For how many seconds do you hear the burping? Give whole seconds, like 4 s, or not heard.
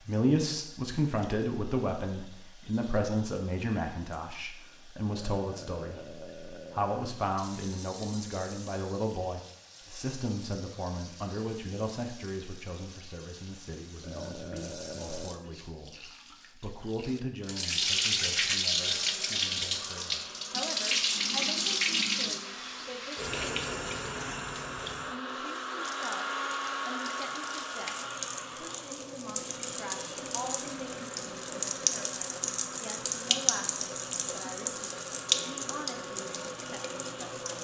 4 s.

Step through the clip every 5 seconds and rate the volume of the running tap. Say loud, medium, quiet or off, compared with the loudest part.
quiet, quiet, quiet, loud, loud, medium, loud, loud.